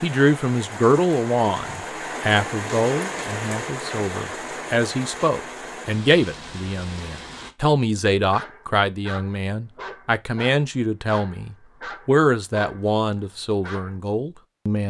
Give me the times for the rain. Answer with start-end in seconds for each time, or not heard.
0.0-7.5.